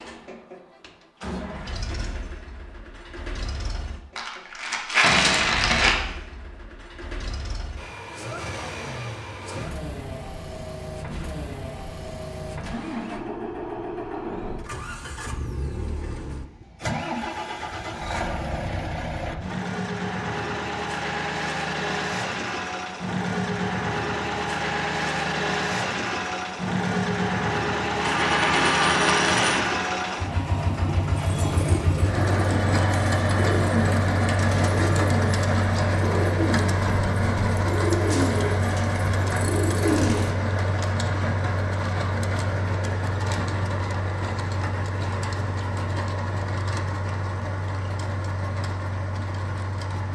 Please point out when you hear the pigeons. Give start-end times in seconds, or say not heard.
31.1-40.4.